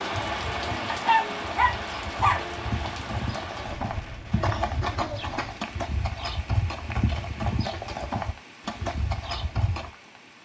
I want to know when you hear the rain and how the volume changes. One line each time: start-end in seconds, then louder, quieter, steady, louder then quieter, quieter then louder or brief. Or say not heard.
0.0-10.3 quieter.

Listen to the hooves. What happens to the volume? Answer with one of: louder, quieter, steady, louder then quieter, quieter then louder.
louder.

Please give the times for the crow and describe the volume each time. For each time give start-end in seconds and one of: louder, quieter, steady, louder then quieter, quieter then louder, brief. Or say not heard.
not heard.